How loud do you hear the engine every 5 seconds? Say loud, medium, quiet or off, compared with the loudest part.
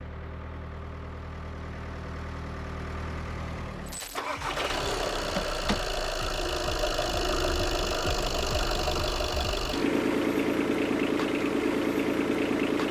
medium, loud, loud.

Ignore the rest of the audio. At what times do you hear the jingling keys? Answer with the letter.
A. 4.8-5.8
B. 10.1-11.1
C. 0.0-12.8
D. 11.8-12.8
A.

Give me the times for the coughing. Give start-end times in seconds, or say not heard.
not heard.